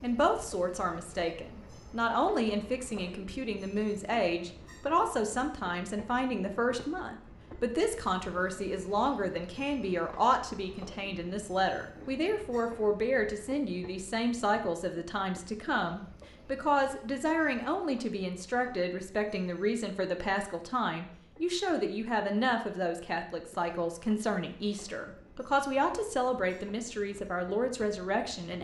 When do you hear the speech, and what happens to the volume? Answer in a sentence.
The speech can be heard from 0.0 to 28.5 s, at a steady volume.